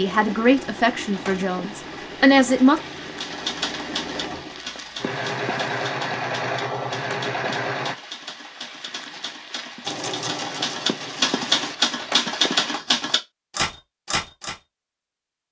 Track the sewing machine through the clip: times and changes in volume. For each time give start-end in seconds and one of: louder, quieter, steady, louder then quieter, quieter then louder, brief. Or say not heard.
0.0-8.0 louder
9.8-11.8 brief.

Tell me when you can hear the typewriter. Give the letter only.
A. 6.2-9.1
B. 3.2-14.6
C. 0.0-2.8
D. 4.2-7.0
B.